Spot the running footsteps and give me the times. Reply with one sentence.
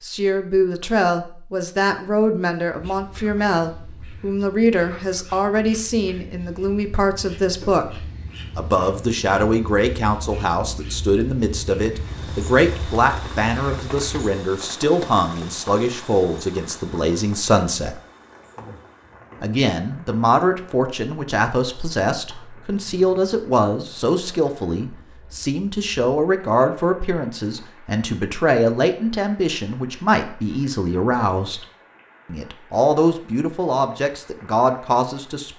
You can't hear the running footsteps here.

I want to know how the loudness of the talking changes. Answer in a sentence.
The volume of the talking stays about the same.